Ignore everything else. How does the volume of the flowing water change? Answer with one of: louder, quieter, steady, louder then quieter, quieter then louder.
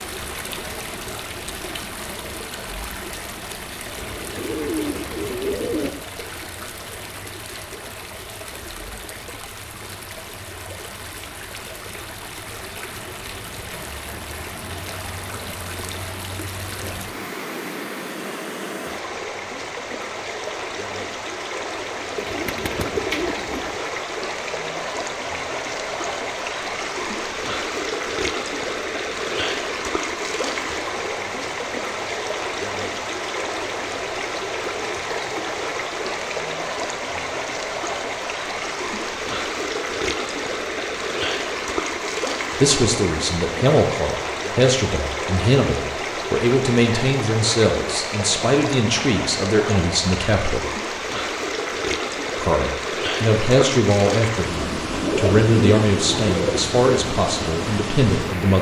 louder.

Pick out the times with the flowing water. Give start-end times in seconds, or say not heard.
0.0-58.5.